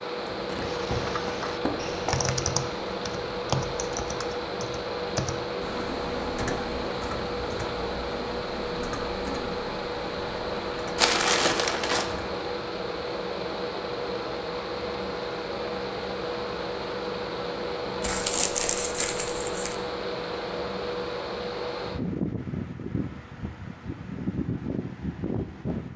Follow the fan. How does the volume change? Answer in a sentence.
The loudness of the fan stays about the same.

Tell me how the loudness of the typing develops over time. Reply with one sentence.
The volume of the typing goes down.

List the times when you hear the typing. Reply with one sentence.
You can hear the typing from 0.6 to 12.5 s.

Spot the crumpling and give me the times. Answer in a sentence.
The crumpling can be heard from 0.1 to 2.3 s, from 10.9 to 12.1 s and from 18.0 to 19.8 s.